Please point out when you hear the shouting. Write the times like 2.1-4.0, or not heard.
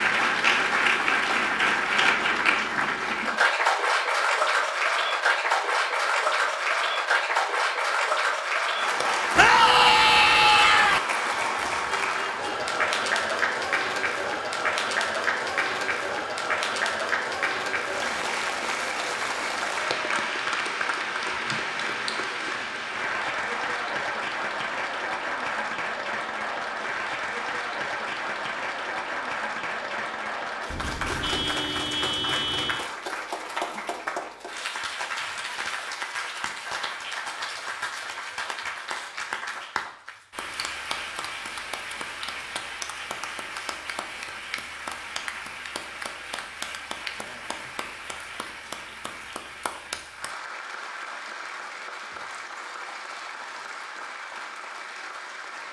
9.3-11.0.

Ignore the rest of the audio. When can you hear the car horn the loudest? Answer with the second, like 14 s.
32 s.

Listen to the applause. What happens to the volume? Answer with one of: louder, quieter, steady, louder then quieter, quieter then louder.
quieter.